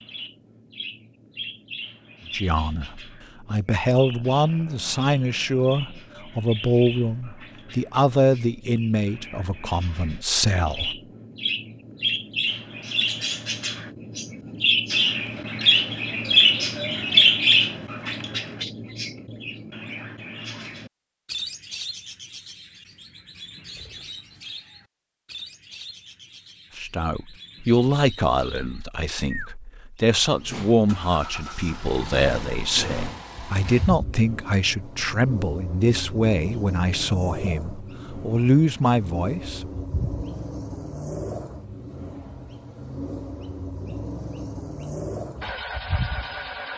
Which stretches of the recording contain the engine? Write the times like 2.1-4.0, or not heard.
30.2-46.7.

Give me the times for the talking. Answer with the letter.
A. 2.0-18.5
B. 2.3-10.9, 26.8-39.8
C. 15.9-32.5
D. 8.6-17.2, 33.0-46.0
B.